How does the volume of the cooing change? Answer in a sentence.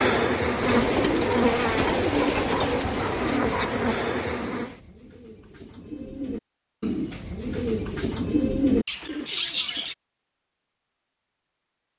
The volume of the cooing goes down, then up.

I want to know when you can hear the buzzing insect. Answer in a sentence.
You can hear the buzzing insect from 0.0 to 4.8 s.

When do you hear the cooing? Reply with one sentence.
You can hear the cooing from 0.6 to 9.9 s.